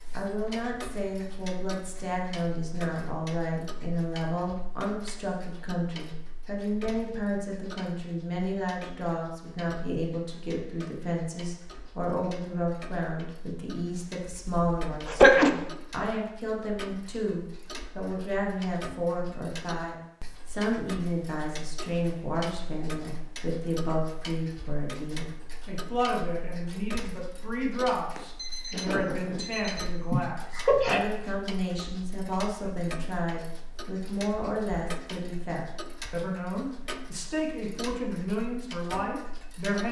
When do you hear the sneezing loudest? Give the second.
15 s.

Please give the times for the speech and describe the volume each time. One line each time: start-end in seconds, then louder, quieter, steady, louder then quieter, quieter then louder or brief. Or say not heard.
0.1-39.8 steady.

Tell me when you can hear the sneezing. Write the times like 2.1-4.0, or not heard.
14.6-15.5, 30.1-31.0.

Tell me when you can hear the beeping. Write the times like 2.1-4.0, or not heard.
28.1-29.9.